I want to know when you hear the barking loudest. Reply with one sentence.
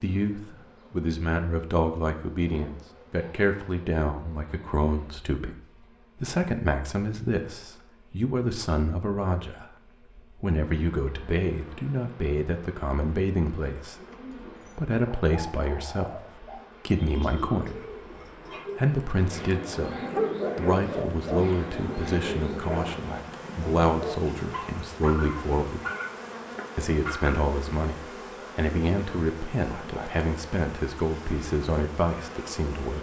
The volume of the barking peaks at 20 seconds.